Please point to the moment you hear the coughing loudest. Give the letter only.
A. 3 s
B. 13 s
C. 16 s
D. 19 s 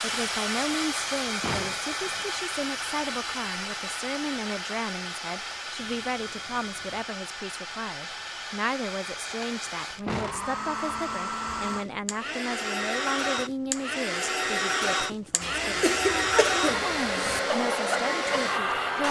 C.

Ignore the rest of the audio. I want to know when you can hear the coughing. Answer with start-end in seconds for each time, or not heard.
15.4-17.4.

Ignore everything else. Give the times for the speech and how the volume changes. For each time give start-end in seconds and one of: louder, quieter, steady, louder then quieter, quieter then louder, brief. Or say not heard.
0.0-19.0 steady.